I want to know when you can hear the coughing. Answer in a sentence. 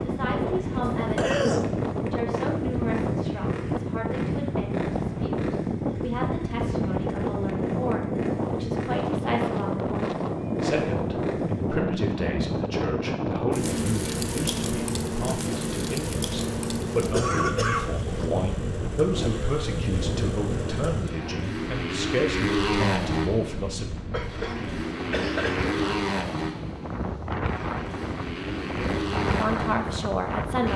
You can hear the coughing from 0.8 to 1.7 s, from 17.1 to 18.3 s and from 24.1 to 25.8 s.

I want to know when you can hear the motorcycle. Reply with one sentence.
The motorcycle can be heard from 0.0 to 30.7 s.